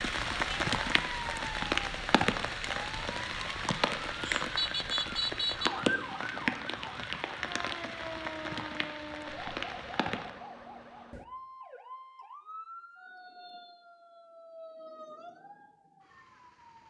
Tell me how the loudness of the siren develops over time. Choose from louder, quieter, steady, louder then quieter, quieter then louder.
louder then quieter.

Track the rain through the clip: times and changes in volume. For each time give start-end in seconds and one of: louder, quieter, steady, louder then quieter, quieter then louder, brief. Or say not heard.
0.0-10.3 quieter.